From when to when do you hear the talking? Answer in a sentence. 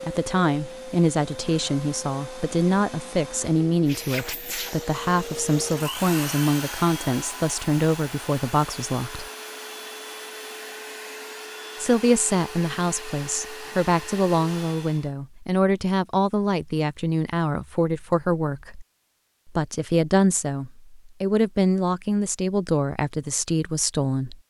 The talking can be heard from 0.0 to 9.2 s, from 11.8 to 18.9 s and from 19.4 to 24.4 s.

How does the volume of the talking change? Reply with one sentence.
The volume of the talking stays about the same.